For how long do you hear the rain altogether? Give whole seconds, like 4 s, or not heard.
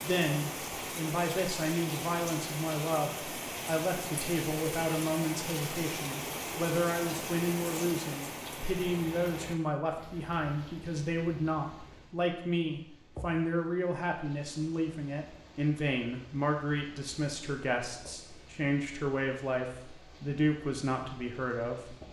22 s.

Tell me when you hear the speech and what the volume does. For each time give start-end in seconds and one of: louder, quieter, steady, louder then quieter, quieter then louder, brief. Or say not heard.
0.0-21.9 steady.